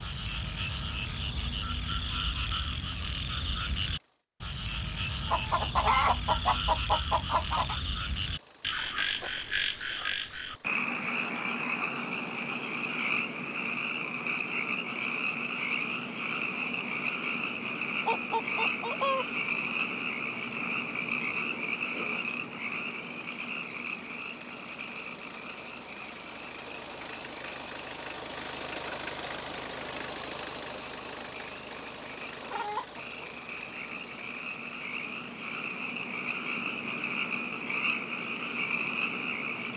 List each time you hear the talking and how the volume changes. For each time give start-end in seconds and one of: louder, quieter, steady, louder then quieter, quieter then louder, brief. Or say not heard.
not heard.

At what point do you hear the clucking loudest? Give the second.
6 s.